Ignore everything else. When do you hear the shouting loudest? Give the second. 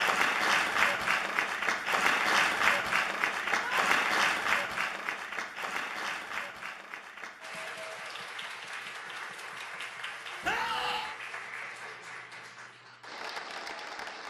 11 s.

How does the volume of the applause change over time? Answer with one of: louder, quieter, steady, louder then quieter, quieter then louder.
quieter.